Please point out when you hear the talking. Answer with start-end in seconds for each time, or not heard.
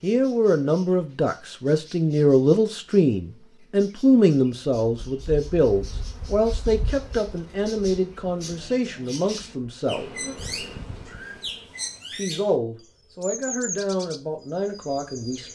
0.0-10.1, 12.1-15.4.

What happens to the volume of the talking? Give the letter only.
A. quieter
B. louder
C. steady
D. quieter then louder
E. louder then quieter
A.